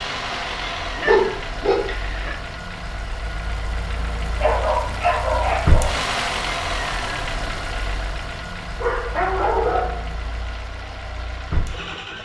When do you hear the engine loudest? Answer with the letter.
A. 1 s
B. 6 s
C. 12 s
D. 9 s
B.